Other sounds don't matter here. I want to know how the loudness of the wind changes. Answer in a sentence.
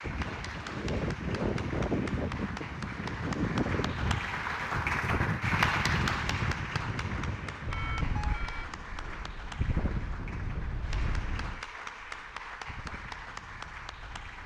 The volume of the wind goes down.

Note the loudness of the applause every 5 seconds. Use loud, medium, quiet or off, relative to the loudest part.
loud, loud, medium.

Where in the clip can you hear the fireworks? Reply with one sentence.
The fireworks can't be heard in this clip.